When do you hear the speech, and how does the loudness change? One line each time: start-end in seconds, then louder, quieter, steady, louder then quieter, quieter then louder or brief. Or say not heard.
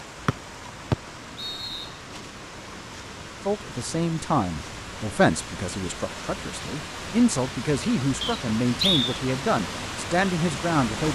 3.5-11.0 steady.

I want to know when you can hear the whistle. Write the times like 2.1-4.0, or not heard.
0.2-1.9, 8.2-9.1.